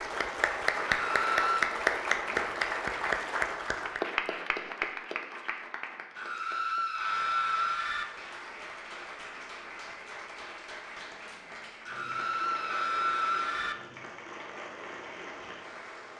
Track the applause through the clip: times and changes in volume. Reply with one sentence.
You can hear the applause from 0.0 to 16.1 s, getting quieter.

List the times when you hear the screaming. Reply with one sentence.
The screaming can be heard from 0.8 to 1.8 s, from 6.2 to 8.1 s and from 11.8 to 13.8 s.